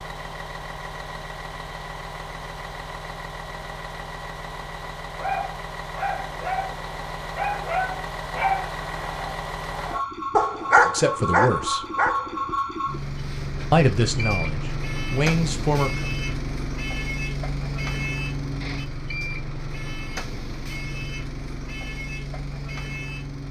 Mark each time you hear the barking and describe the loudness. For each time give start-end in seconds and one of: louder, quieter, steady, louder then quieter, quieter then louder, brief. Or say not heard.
5.2-12.4 louder.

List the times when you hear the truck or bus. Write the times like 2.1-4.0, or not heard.
0.0-23.4.